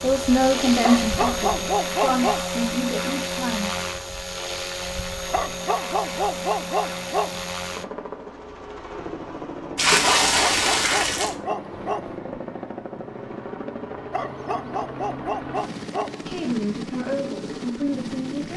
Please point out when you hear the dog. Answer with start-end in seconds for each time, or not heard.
0.8-2.5, 5.3-7.5, 10.2-12.2, 14.1-16.4.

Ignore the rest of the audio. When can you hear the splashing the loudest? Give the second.
10 s.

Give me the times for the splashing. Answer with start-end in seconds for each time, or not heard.
9.8-11.3.